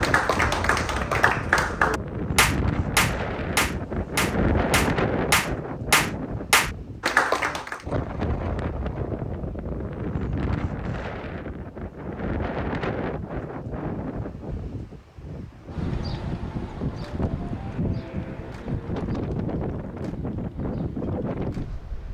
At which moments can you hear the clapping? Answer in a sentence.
The clapping can be heard from 0.0 to 7.8 s.